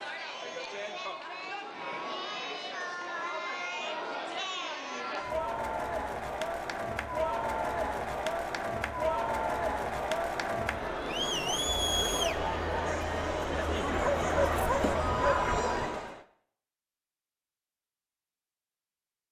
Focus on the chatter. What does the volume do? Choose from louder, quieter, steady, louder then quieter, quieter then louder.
louder.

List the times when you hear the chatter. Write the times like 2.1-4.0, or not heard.
0.0-16.2.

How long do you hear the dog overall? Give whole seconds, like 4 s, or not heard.
2 s.